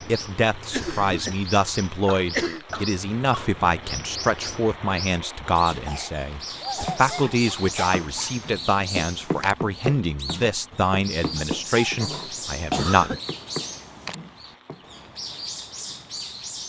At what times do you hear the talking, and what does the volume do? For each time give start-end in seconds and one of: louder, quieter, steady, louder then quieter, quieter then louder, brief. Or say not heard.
0.1-13.2 steady.